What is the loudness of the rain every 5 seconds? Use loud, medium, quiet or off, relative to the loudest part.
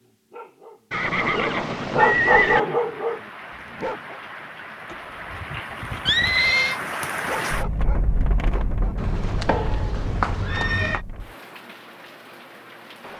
medium, loud, medium.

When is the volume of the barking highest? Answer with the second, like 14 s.
2 s.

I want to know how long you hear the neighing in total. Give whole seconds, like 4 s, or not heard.
6 s.